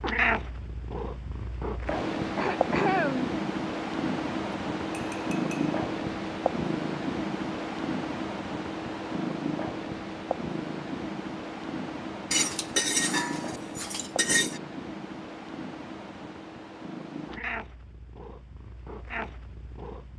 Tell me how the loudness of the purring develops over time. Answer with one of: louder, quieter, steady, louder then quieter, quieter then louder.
quieter.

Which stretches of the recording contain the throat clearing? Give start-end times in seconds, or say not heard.
2.4-3.3.